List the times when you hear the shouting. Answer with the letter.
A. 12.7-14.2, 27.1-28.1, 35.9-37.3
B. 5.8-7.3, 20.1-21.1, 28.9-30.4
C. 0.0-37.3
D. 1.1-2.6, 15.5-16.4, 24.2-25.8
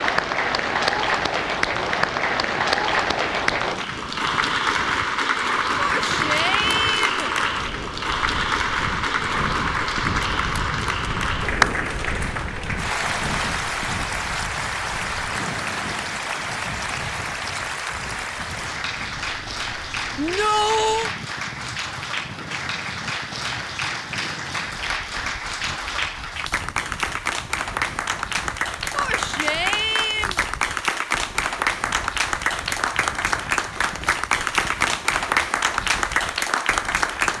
B.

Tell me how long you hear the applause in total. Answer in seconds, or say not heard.
37 s.